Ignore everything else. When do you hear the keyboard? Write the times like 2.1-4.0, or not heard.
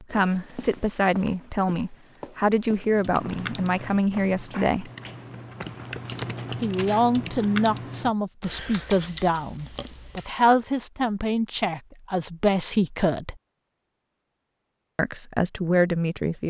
2.9-10.3.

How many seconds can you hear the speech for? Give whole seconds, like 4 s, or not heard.
13 s.